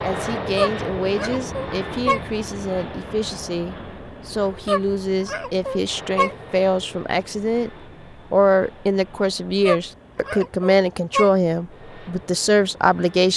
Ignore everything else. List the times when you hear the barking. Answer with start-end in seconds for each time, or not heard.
0.6-2.2, 4.7-6.3, 9.7-11.3.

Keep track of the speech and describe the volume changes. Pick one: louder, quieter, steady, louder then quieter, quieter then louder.
louder.